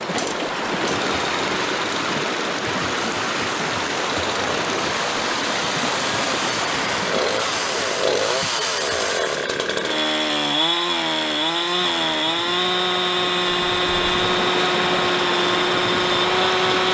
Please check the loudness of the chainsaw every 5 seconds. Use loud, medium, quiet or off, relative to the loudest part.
medium, loud, loud, loud.